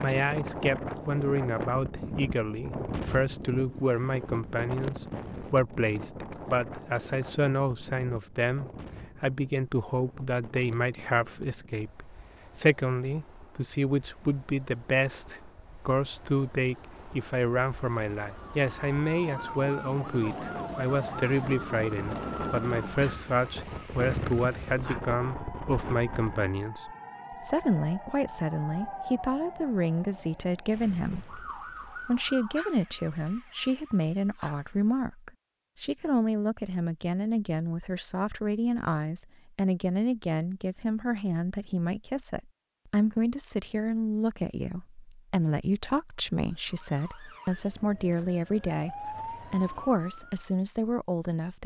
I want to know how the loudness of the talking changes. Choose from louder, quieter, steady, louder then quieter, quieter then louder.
steady.